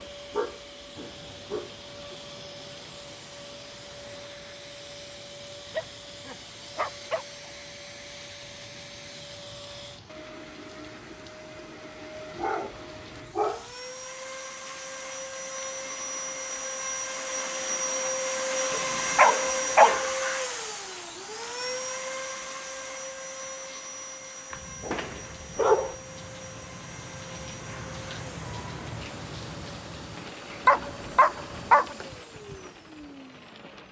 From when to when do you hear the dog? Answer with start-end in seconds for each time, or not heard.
0.3-2.1, 5.7-7.5, 12.3-13.7, 18.7-20.0, 24.5-25.9, 30.6-31.9.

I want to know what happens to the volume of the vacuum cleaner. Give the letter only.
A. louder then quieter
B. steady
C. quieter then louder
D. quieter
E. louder
A.